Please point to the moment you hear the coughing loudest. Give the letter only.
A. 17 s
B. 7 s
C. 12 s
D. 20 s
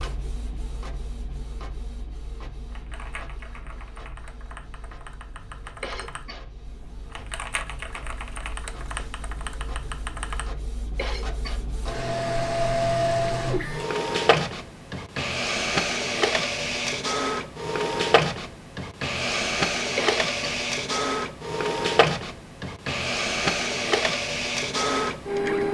D.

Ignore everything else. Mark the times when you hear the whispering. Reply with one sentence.
You can't hear the whispering here.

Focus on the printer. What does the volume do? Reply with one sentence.
The loudness of the printer goes up.